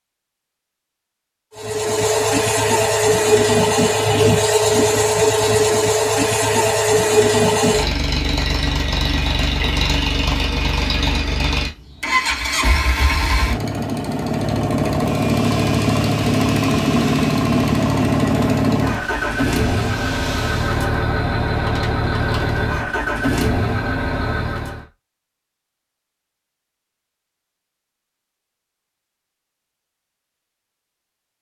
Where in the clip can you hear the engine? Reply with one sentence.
The engine can be heard from 1.6 to 24.9 s.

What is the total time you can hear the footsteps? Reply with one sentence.
The footsteps can't be heard in this clip.